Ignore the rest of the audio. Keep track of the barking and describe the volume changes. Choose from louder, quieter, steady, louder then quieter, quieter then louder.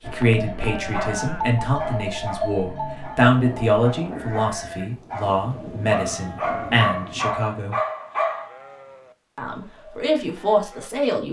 quieter then louder.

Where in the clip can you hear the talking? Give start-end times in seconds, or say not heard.
0.0-7.8, 9.3-11.2.